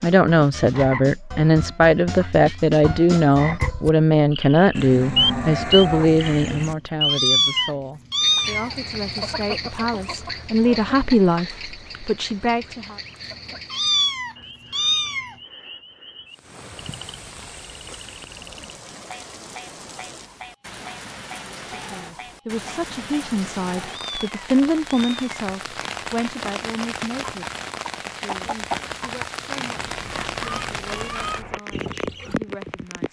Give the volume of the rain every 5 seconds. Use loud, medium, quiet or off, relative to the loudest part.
off, off, off, medium, medium, loud, loud.